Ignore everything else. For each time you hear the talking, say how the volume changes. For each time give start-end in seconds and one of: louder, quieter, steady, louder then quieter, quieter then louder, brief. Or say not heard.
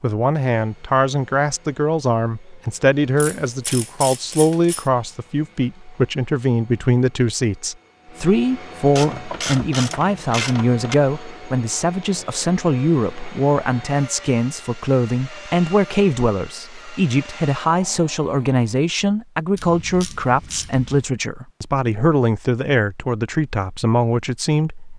0.0-24.9 steady.